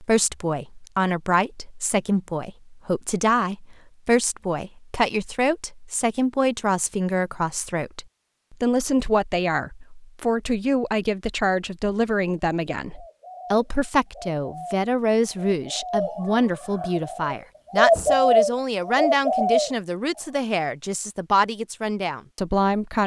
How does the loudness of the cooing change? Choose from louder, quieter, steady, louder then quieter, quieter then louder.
louder.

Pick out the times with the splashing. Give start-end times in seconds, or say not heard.
not heard.